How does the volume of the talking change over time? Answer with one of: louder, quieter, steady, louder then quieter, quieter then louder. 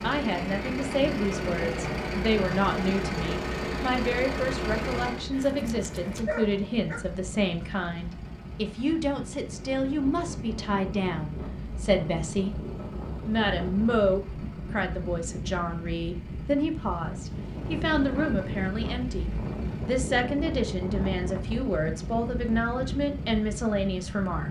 steady.